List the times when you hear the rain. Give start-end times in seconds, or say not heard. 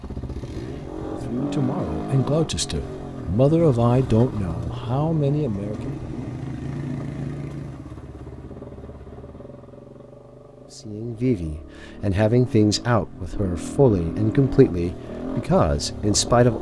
not heard.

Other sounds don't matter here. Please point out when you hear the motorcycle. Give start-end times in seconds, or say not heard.
0.0-16.5.